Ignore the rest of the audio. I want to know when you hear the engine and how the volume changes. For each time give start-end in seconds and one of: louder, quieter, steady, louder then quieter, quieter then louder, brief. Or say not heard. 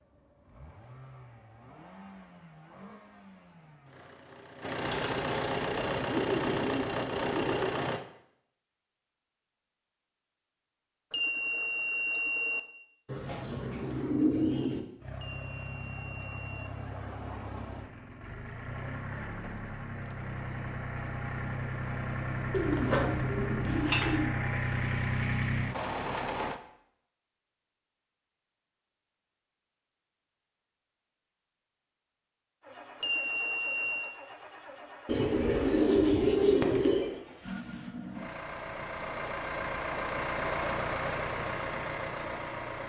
0.0-8.1 louder
15.0-26.6 louder
32.6-42.8 louder.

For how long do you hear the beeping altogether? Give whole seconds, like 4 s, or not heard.
4 s.